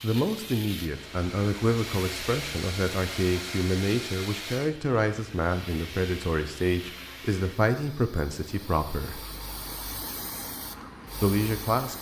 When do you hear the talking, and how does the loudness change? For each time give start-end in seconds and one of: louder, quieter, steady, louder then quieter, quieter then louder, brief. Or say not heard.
0.0-9.2 steady
11.2-11.9 brief.